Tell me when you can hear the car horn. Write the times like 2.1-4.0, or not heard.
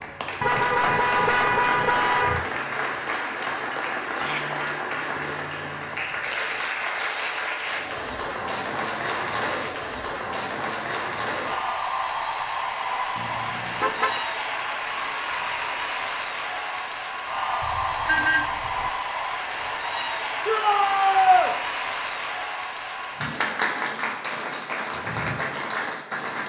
0.4-2.4, 13.2-14.2, 17.6-18.9.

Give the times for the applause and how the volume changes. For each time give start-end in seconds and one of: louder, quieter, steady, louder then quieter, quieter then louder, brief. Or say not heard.
0.0-26.4 steady.